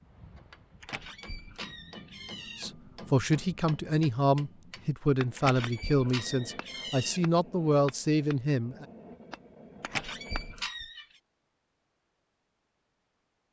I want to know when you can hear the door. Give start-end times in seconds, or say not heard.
0.8-2.6, 5.3-7.2, 9.8-11.1.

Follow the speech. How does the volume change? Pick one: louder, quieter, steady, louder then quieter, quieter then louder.
steady.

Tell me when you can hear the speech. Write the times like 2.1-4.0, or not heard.
2.6-8.8.